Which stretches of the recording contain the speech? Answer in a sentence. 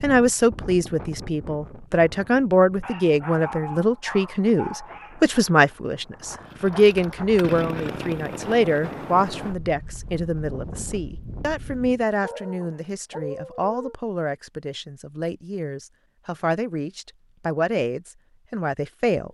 You can hear the speech from 0.0 to 19.2 s.